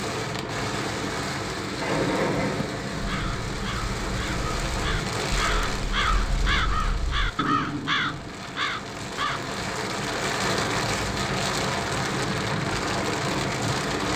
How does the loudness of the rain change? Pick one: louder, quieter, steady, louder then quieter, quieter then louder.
quieter then louder.